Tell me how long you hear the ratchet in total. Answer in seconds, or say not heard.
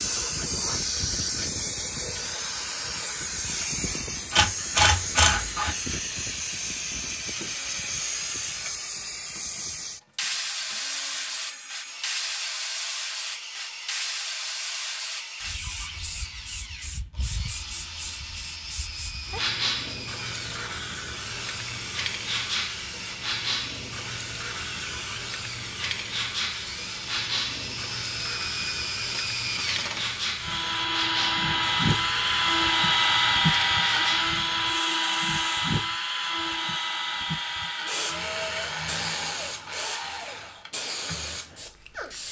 2 s.